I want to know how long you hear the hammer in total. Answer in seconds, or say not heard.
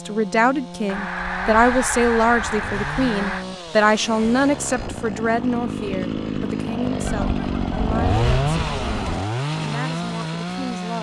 not heard.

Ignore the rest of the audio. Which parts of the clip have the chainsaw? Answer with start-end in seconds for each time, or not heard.
0.0-10.9.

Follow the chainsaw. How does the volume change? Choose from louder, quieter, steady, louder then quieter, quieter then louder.
louder.